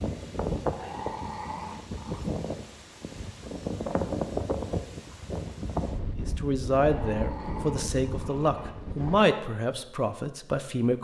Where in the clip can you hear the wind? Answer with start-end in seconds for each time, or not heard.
0.0-9.2.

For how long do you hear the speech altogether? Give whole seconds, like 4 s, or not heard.
5 s.